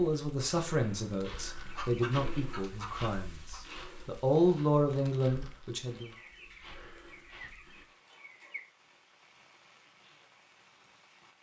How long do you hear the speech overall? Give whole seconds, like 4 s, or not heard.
6 s.